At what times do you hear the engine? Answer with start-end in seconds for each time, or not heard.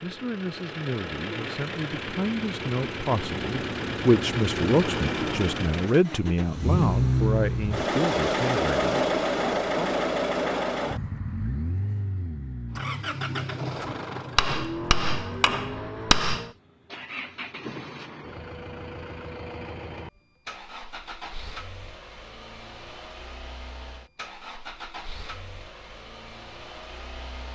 0.0-27.5.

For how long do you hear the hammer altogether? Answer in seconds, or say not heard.
2 s.